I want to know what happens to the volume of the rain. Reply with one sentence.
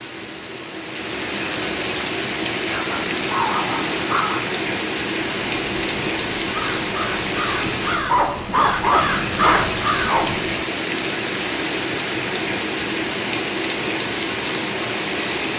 The volume of the rain stays about the same.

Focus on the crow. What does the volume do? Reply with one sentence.
The loudness of the crow goes up.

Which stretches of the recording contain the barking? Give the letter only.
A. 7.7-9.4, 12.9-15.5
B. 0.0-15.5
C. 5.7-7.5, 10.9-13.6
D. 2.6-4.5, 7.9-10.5
D.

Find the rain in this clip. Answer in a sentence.
You can hear the rain from 0.0 to 15.5 s.